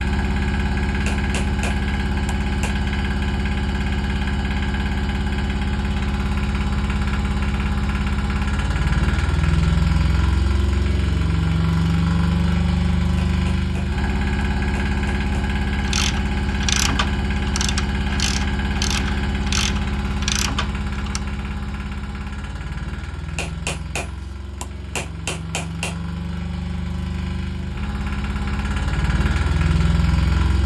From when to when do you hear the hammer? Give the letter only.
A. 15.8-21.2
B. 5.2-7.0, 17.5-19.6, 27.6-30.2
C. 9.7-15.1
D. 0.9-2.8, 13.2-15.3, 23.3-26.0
D.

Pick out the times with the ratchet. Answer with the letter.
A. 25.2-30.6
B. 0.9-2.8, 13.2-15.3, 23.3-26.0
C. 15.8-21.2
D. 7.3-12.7
C.